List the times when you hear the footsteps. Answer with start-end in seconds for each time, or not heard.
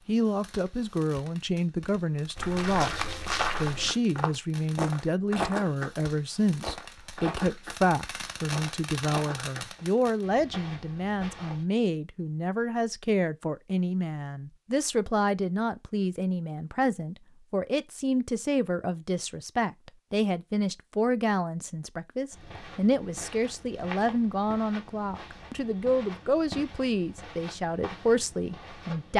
2.4-11.7, 22.3-29.1.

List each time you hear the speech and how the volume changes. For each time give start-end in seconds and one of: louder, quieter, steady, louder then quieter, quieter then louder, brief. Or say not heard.
0.1-29.1 steady.